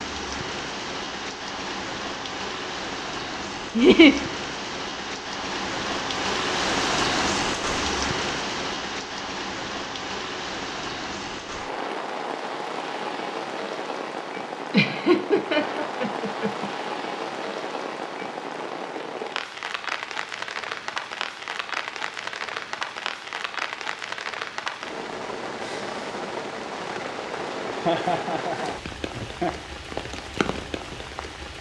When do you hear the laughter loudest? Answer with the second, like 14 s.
4 s.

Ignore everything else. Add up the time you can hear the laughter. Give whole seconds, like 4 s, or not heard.
4 s.